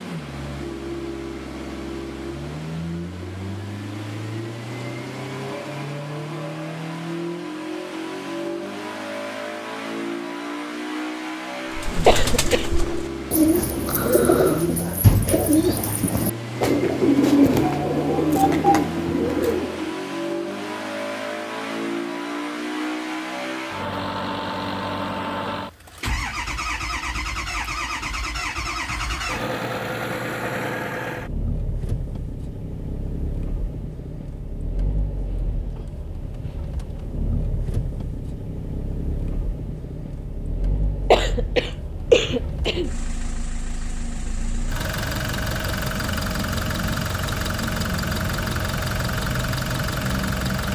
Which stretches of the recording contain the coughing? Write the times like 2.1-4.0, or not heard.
12.1-12.7, 41.1-42.9.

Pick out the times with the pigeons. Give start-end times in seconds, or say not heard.
11.7-19.9.